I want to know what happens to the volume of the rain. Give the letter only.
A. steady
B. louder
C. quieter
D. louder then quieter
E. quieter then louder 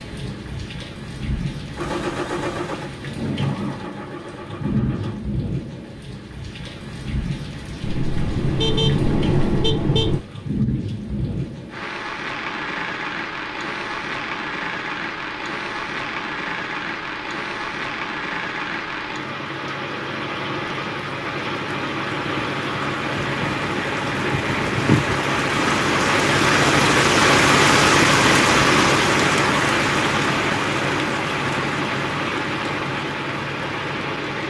B.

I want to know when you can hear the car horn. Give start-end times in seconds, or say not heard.
7.8-10.2.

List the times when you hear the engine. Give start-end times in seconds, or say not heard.
1.8-5.2.